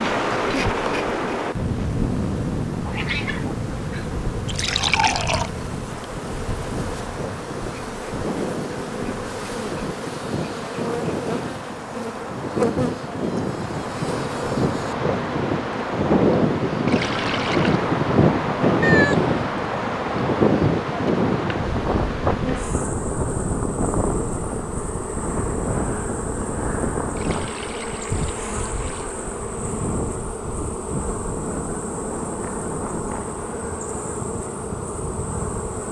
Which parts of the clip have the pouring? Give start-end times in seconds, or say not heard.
4.5-5.5, 16.9-17.9, 27.1-29.1.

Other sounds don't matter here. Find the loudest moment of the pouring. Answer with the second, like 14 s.
5 s.